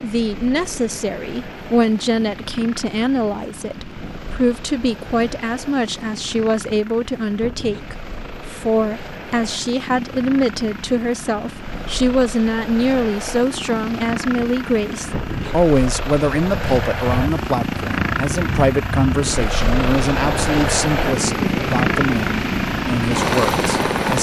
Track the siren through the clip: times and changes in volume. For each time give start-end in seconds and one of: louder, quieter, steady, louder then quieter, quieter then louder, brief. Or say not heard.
not heard.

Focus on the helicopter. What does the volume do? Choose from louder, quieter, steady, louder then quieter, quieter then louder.
louder.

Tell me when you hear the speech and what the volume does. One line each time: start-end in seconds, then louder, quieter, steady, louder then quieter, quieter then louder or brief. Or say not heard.
0.0-24.1 steady.